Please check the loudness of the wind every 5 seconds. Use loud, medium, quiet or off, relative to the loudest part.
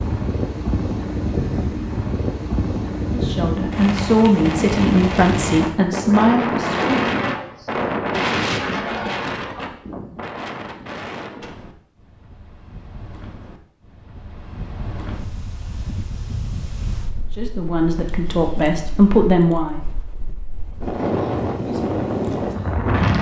loud, loud, quiet, quiet, loud.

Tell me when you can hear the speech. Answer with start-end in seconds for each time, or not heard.
3.1-7.0, 17.4-19.8.